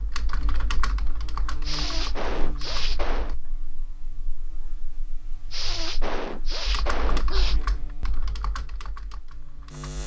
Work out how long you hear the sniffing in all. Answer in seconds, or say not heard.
4 s.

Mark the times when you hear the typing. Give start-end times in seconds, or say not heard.
0.0-3.4, 6.7-10.0.